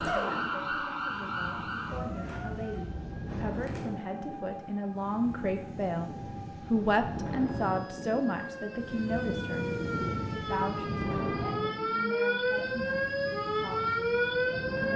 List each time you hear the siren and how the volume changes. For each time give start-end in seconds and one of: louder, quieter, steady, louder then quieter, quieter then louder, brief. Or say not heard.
0.0-14.9 quieter then louder.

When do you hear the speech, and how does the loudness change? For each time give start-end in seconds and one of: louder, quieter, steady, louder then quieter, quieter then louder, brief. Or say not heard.
0.1-6.1 louder
6.7-14.9 quieter.